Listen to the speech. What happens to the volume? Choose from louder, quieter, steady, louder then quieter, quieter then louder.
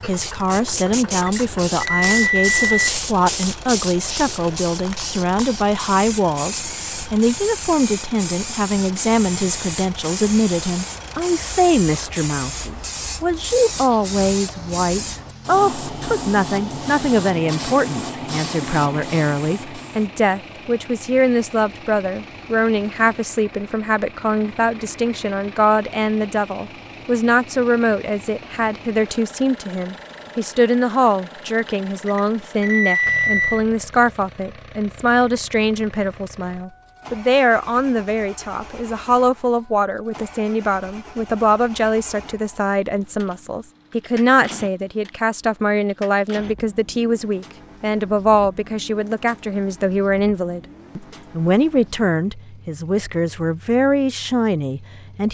steady.